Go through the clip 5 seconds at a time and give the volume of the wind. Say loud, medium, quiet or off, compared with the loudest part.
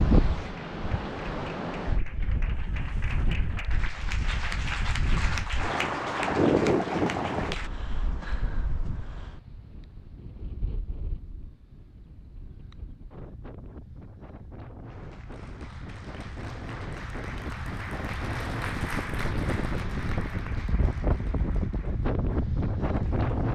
loud, loud, quiet, medium, loud.